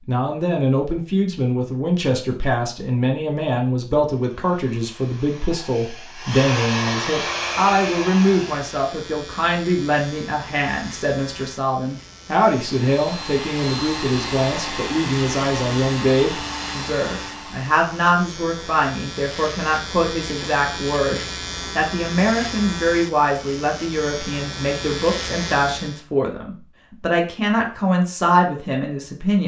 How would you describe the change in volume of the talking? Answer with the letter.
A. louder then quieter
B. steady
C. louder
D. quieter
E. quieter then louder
B.